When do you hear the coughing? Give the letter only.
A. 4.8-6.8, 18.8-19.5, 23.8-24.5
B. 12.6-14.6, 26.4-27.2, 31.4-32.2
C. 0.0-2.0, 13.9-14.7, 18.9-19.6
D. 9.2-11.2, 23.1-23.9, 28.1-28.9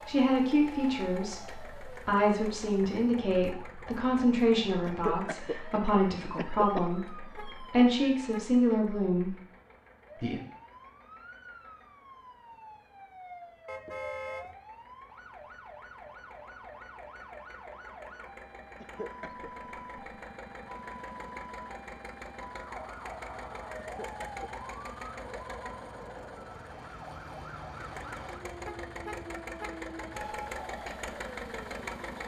A.